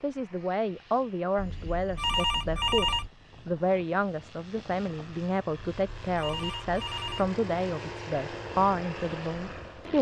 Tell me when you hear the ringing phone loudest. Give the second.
3 s.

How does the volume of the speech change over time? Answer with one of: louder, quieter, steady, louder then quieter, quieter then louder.
steady.